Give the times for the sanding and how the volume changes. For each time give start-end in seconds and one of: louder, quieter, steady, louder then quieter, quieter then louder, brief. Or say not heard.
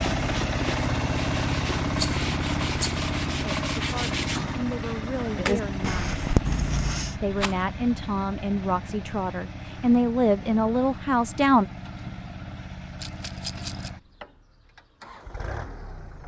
0.0-7.2 louder.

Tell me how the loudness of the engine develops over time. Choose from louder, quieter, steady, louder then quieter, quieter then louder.
quieter.